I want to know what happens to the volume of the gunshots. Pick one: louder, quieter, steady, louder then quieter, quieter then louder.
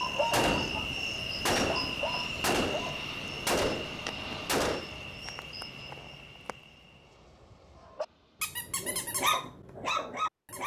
louder then quieter.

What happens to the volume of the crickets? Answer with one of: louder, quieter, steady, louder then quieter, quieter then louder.
quieter.